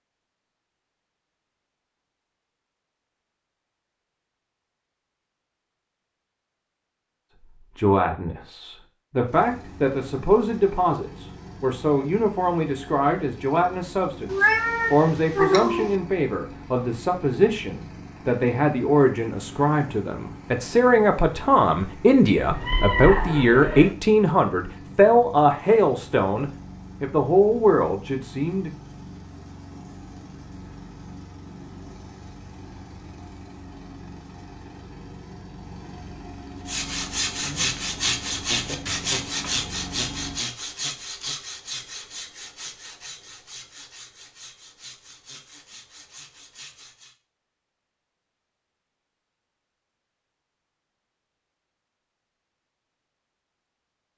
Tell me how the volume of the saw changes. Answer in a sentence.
The loudness of the saw goes down.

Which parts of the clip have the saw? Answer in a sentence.
The saw can be heard from 36.6 to 47.1 s.